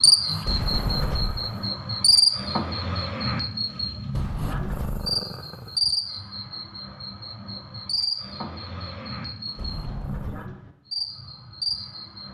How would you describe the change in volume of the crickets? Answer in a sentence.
The loudness of the crickets goes down.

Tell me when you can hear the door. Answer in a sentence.
You can hear the door from 0.4 to 1.4 s, from 4.1 to 5.1 s and from 9.6 to 10.3 s.